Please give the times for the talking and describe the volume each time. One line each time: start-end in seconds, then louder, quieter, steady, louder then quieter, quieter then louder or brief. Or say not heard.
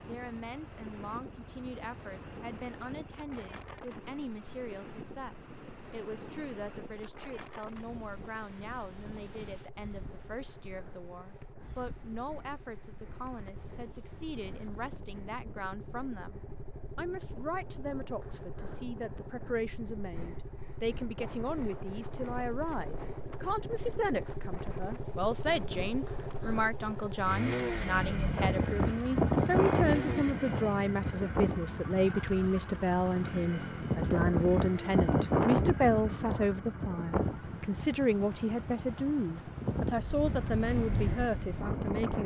0.0-42.2 louder.